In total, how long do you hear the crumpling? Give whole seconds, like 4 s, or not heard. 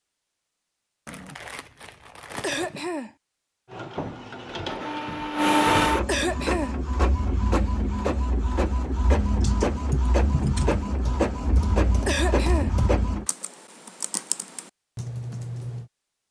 2 s.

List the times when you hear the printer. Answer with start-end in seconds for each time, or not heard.
3.6-13.2.